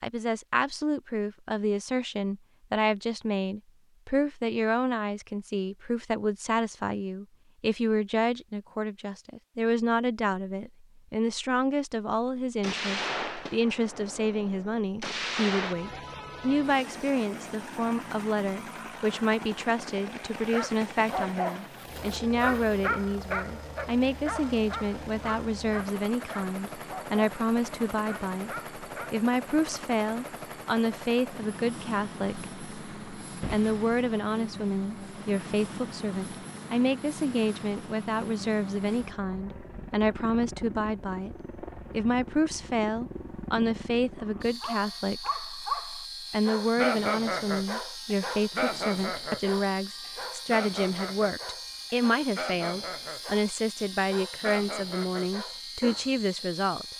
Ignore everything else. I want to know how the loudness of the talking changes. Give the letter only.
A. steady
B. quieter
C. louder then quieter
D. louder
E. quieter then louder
A.